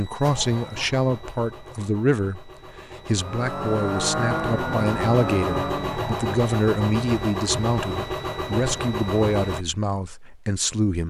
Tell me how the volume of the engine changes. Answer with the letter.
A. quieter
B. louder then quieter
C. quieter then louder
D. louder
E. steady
D.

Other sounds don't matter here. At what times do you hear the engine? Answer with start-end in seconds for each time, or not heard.
0.0-9.7.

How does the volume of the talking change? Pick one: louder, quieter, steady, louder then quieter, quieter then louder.
steady.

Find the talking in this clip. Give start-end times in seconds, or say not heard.
0.0-11.0.